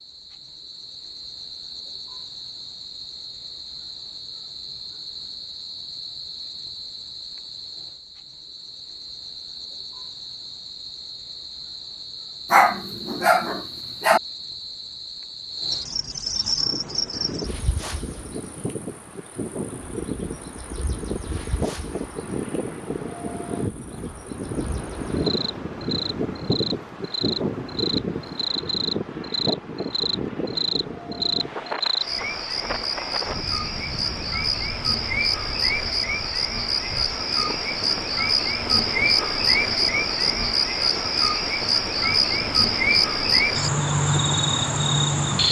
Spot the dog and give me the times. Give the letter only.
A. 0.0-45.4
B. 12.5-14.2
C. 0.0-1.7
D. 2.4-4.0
B.